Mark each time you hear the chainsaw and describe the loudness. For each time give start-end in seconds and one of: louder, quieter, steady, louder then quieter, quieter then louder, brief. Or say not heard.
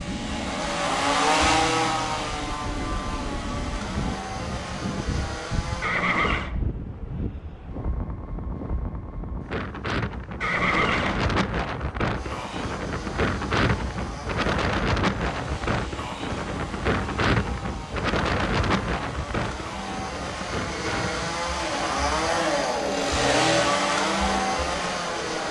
0.0-5.9 quieter
12.1-25.4 louder.